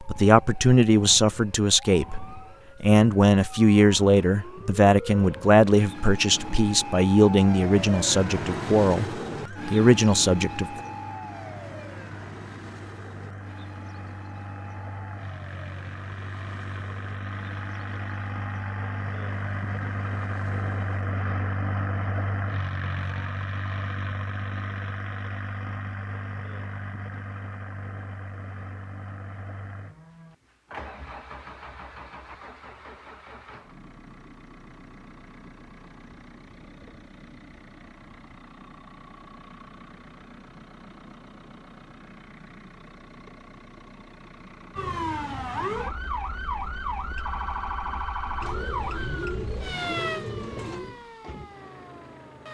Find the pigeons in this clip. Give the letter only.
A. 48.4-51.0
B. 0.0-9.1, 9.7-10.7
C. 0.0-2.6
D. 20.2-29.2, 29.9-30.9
A.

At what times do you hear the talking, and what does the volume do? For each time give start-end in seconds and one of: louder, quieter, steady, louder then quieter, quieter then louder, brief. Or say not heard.
0.0-9.1 steady
9.7-10.7 brief.